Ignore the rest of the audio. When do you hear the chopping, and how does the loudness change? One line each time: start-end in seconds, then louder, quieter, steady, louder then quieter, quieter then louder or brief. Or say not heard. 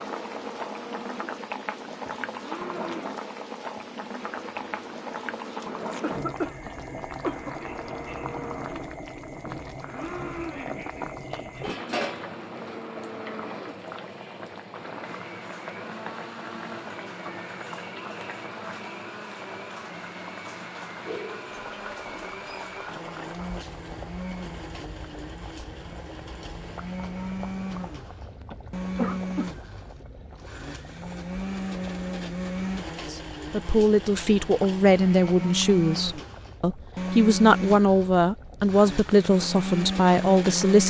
not heard.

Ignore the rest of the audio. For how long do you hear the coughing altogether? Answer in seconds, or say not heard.
3 s.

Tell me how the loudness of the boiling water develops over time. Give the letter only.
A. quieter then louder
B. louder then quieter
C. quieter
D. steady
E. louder
C.